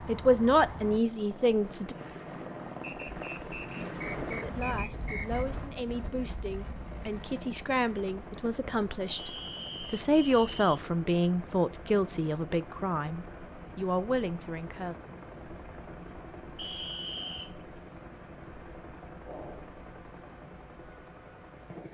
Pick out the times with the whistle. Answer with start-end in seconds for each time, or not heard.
2.8-5.5, 9.1-10.8, 16.6-17.6.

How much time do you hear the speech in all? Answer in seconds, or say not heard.
13 s.